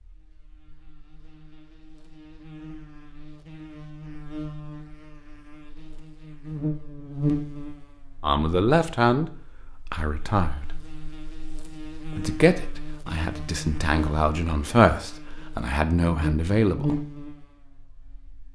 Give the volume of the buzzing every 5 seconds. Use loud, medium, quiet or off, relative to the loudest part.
medium, loud, medium, loud.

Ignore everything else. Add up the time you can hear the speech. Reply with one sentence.
The speech can be heard for 7 seconds in total.